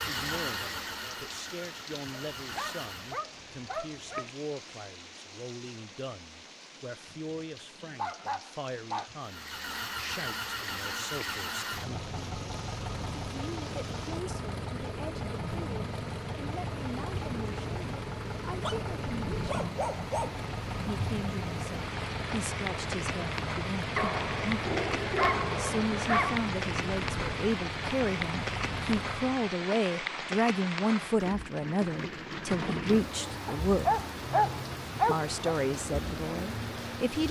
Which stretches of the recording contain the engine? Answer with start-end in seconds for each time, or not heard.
0.0-3.2, 9.2-29.6.